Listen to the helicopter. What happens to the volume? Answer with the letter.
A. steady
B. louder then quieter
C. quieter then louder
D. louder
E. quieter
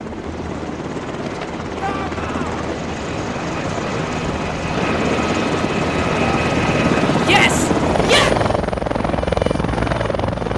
D.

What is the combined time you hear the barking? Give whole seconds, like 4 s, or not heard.
not heard.